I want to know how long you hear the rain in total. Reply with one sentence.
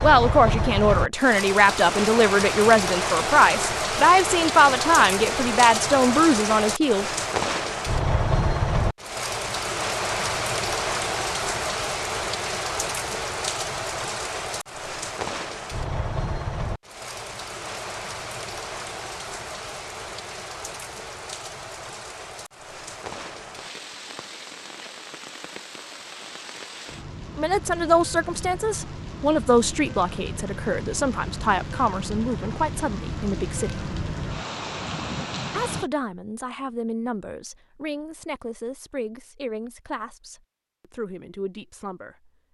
The rain can be heard for 36 seconds in total.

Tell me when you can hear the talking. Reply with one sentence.
You can hear the talking from 0.0 to 7.0 s, from 27.4 to 33.9 s and from 35.5 to 42.3 s.